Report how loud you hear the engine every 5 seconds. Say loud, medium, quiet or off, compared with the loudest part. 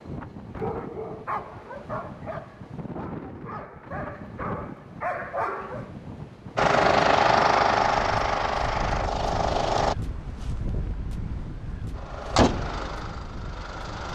off, loud, medium.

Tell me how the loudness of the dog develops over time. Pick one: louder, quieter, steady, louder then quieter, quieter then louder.
quieter then louder.